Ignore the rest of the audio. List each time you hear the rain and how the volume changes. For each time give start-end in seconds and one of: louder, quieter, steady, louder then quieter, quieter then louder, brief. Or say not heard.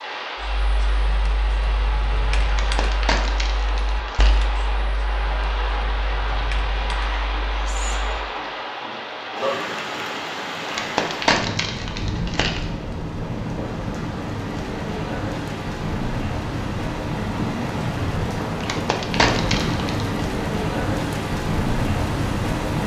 0.0-22.8 louder.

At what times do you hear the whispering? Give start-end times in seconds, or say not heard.
6.9-8.1.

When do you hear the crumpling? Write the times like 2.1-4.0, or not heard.
2.5-4.4, 10.7-12.6, 18.6-20.1.